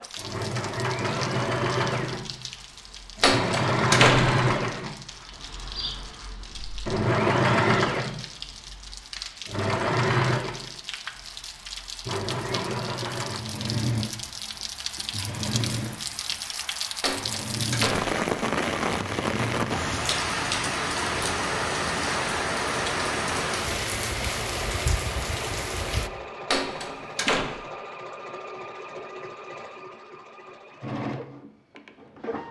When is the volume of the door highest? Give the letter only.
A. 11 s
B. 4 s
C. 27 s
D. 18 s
B.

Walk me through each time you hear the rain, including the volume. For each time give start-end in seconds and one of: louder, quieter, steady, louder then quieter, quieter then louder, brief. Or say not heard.
0.0-26.1 louder.